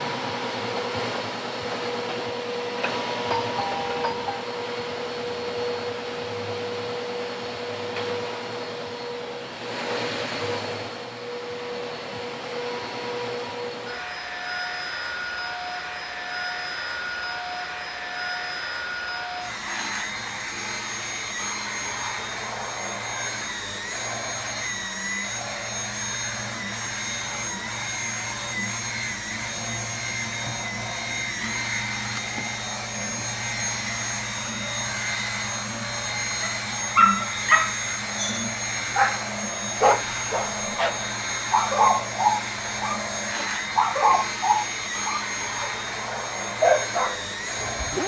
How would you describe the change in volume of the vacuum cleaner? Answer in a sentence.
The loudness of the vacuum cleaner stays about the same.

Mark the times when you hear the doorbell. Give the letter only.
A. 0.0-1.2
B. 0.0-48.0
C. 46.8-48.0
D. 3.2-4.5
D.